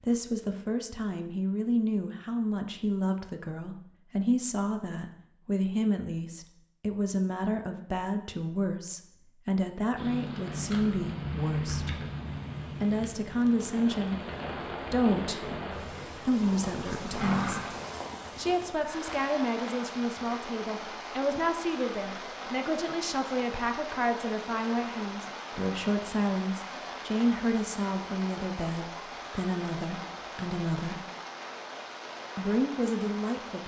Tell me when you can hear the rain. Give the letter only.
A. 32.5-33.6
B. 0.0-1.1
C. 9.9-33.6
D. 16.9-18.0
C.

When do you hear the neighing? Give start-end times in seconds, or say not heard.
16.9-18.0.